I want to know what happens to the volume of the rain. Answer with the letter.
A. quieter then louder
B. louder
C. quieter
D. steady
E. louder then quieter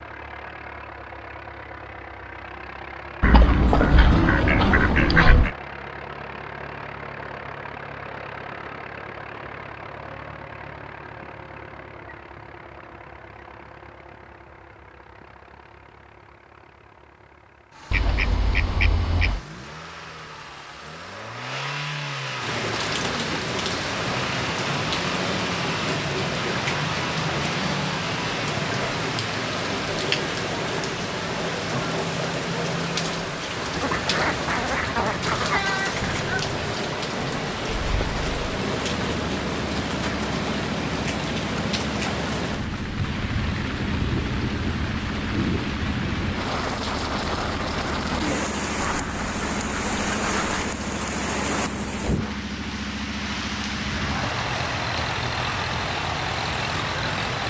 D.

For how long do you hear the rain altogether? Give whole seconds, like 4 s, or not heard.
35 s.